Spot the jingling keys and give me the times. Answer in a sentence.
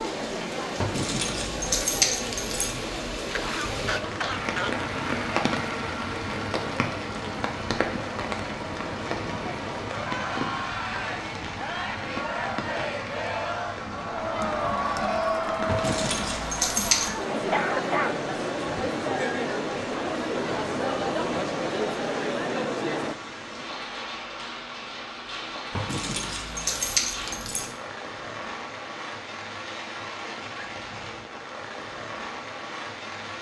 You can hear the jingling keys from 0.8 to 2.8 s, from 15.7 to 17.1 s and from 25.7 to 27.8 s.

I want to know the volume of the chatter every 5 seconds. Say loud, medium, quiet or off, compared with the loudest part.
medium, medium, loud, loud, loud, off, off.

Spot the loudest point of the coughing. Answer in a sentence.
The volume of the coughing peaks at 18 seconds.